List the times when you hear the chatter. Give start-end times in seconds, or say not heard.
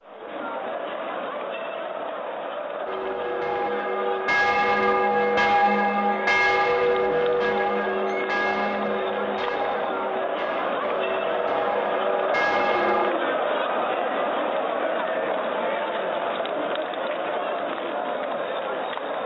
0.0-19.2.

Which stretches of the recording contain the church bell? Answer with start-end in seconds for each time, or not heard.
2.9-13.2.